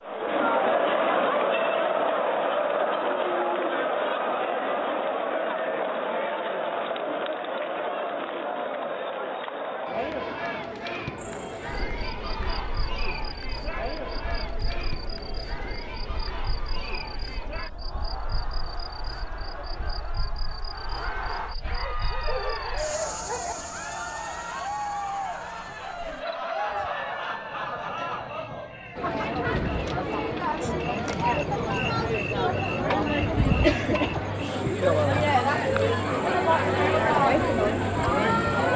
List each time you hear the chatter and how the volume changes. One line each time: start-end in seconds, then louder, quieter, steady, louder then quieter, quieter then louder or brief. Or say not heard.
0.0-38.7 quieter then louder.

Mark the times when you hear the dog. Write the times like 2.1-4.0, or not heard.
21.8-23.6.